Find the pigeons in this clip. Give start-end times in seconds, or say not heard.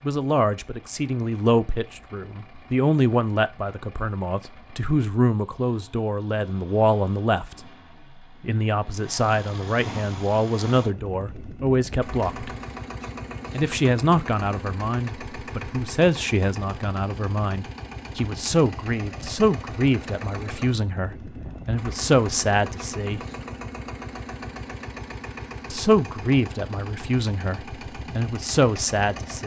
not heard.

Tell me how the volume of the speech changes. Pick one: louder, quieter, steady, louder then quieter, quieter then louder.
steady.